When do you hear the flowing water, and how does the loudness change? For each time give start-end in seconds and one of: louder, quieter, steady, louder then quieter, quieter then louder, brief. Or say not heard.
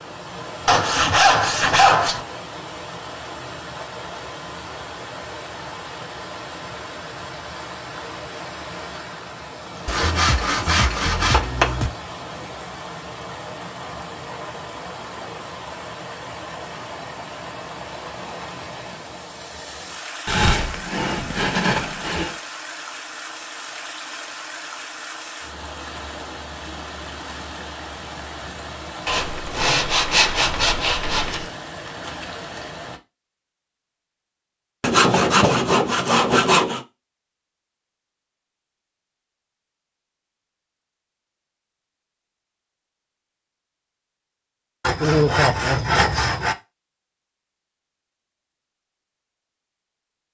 0.0-33.0 steady.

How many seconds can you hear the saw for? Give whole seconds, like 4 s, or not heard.
12 s.